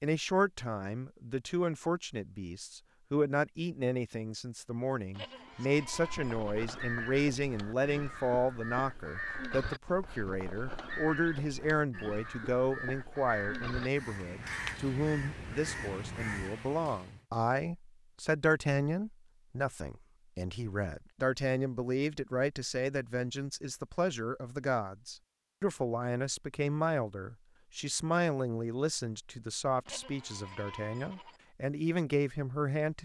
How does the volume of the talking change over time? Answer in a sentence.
The loudness of the talking stays about the same.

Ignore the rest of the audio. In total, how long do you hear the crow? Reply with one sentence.
You can hear the crow for 12 seconds altogether.